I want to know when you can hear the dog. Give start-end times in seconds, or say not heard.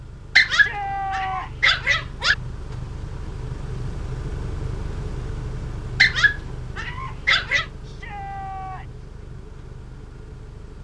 0.3-2.4, 6.0-7.7.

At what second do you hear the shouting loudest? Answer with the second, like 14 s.
1 s.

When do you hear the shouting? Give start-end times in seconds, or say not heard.
0.5-1.5, 7.8-9.1.